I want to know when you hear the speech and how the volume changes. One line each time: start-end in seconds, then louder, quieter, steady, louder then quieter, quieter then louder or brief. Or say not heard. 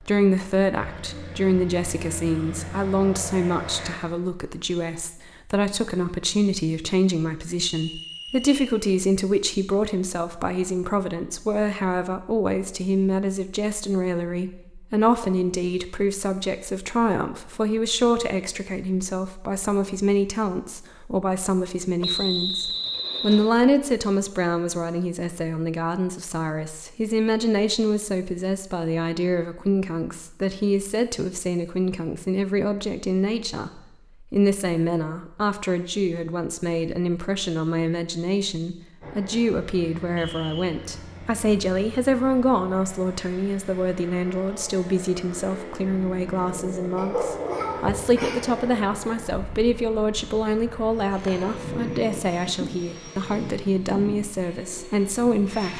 0.0-55.7 steady.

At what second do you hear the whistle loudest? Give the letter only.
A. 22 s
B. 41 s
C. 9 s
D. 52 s
A.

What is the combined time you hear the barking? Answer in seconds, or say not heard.
2 s.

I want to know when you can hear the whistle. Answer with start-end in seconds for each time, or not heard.
7.8-8.6, 22.0-23.6, 40.1-40.8.